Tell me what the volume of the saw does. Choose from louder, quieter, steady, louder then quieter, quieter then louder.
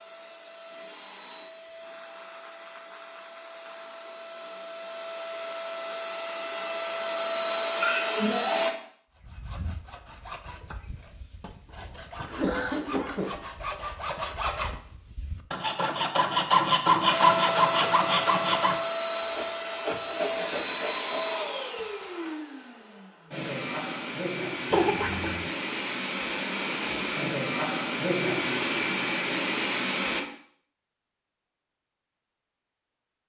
louder then quieter.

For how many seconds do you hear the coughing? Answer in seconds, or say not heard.
3 s.